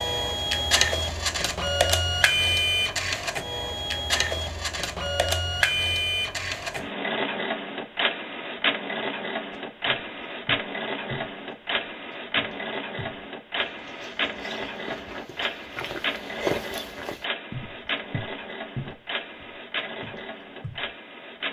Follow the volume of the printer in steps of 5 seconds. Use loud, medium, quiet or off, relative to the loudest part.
loud, loud, medium, medium, medium.